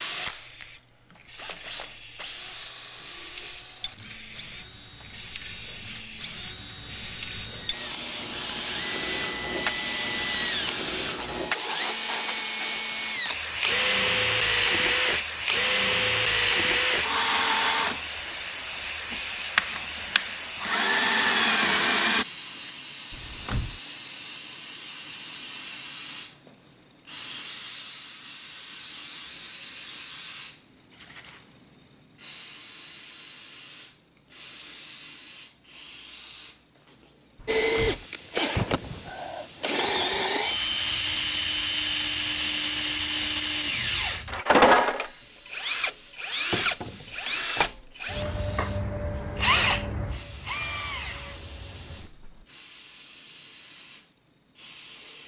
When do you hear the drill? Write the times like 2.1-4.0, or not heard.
0.0-22.2, 37.5-52.5.